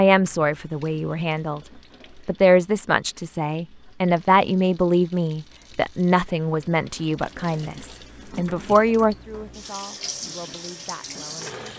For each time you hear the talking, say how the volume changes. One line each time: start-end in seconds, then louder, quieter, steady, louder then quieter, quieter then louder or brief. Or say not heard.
0.0-1.6 brief
2.2-11.6 quieter.